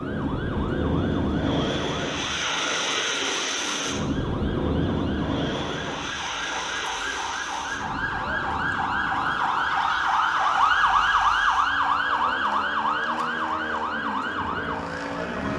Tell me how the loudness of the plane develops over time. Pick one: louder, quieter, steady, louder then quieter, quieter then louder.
quieter then louder.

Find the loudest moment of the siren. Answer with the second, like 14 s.
11 s.